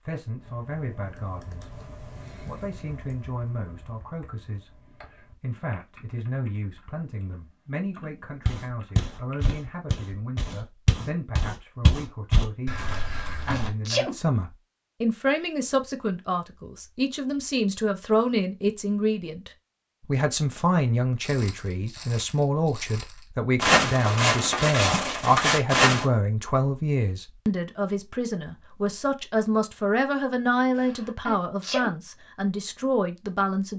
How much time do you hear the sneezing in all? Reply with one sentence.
The sneezing can be heard for 2 seconds in total.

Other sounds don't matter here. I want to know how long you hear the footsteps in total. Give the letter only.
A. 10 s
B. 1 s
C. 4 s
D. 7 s
A.